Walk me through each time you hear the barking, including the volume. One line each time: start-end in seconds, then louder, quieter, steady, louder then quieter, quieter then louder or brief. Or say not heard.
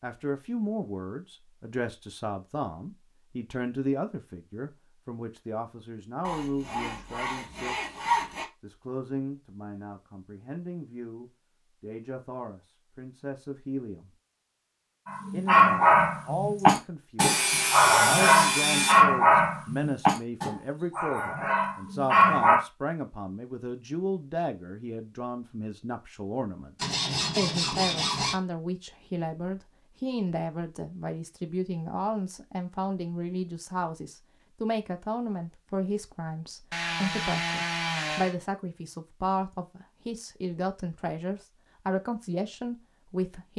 15.1-22.6 quieter.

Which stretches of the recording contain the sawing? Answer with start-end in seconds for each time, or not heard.
6.2-8.4, 17.2-19.1, 26.8-28.4, 36.7-38.4.